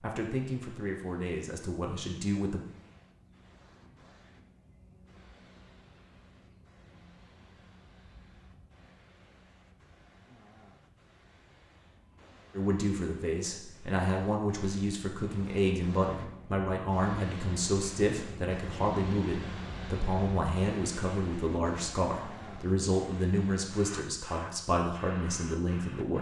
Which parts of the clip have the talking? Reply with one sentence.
The talking can be heard from 0.0 to 2.6 s and from 12.6 to 26.1 s.